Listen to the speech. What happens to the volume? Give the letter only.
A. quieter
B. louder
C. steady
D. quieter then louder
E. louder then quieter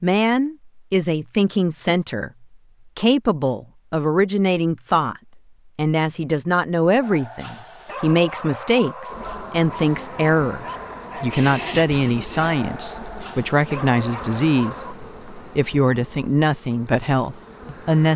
C.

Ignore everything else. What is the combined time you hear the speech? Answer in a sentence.
You can hear the speech for 18 seconds altogether.